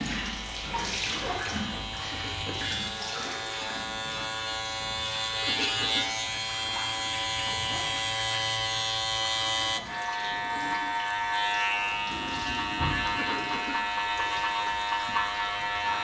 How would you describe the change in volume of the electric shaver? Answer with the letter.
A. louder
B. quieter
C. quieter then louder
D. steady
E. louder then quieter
A.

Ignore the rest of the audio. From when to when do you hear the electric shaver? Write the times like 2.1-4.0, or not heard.
0.0-15.9.